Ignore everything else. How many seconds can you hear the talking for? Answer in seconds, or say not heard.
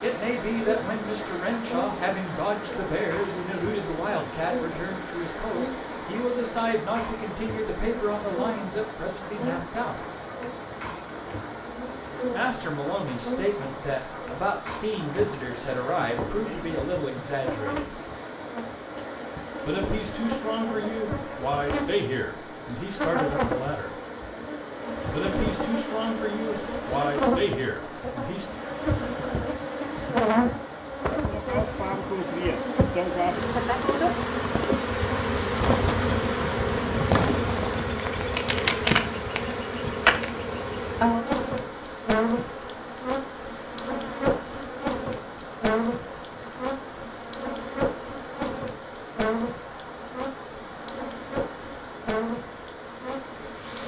23 s.